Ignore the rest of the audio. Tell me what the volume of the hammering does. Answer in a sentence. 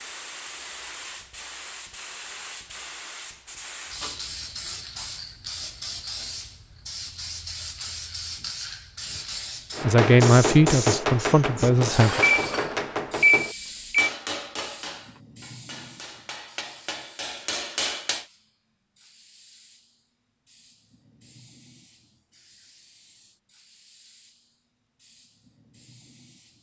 The volume of the hammering goes down, then up.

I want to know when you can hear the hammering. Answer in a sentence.
The hammering can be heard from 9.7 to 18.2 s.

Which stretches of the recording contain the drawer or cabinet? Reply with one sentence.
You can't hear the drawer or cabinet here.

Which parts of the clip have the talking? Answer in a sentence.
The talking can be heard from 9.8 to 12.2 s.